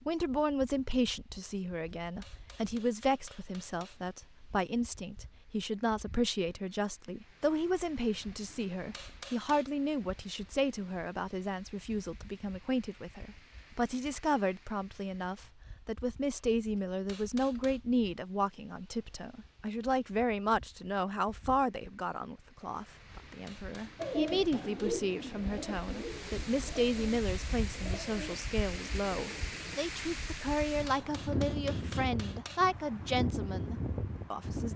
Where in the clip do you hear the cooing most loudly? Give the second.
24 s.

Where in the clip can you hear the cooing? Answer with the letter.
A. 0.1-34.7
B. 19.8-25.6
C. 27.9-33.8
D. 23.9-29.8
D.